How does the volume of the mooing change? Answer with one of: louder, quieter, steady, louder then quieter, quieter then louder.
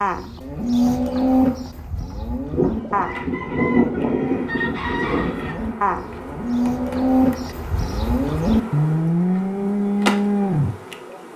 quieter then louder.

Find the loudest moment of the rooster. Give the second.
4 s.